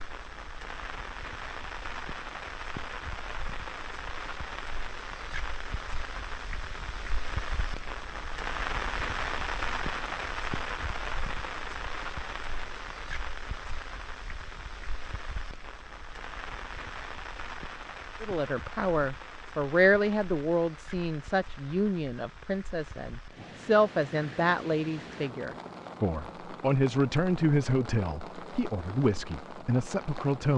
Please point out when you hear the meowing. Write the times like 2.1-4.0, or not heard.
not heard.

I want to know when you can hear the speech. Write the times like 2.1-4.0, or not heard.
18.2-30.5.